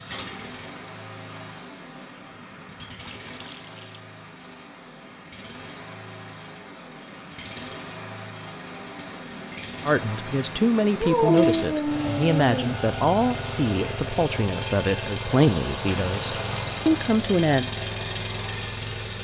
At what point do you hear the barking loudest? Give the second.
11 s.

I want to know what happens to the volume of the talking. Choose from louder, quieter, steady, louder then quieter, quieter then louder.
steady.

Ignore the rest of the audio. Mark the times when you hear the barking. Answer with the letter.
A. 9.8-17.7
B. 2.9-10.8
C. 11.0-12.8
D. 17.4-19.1
C.